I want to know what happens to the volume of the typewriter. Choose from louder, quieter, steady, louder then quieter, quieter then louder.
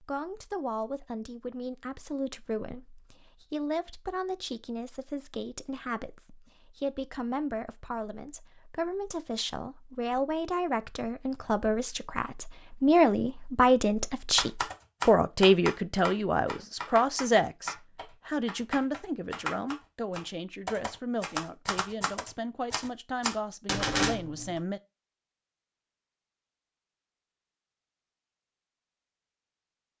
quieter then louder.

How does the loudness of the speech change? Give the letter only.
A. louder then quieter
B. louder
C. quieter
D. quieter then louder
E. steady
A.